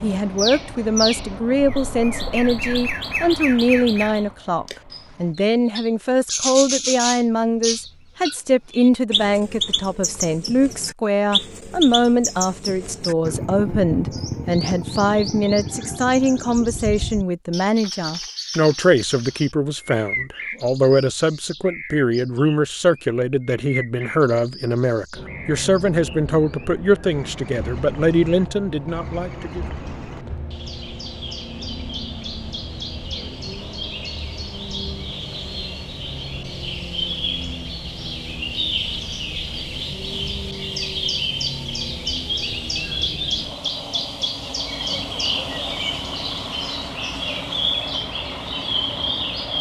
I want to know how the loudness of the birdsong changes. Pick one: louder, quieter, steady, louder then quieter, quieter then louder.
quieter then louder.